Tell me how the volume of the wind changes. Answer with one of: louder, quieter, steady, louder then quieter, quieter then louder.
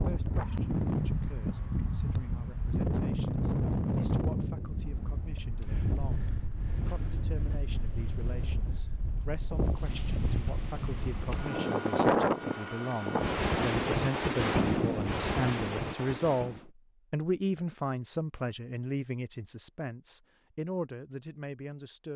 quieter then louder.